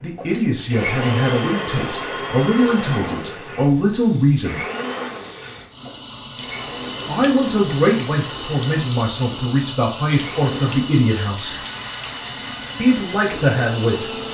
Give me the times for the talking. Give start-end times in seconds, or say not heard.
0.0-4.6, 7.0-11.6, 12.8-14.1.